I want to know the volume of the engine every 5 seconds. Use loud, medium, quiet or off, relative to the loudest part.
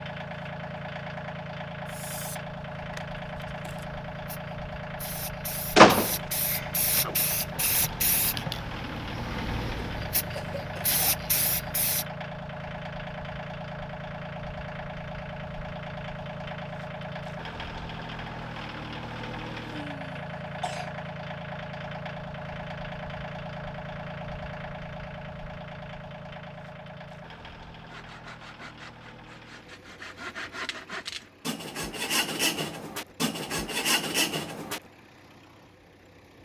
loud, loud, loud, loud, loud, medium, quiet, quiet.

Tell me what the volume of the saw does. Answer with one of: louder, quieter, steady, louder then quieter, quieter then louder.
louder.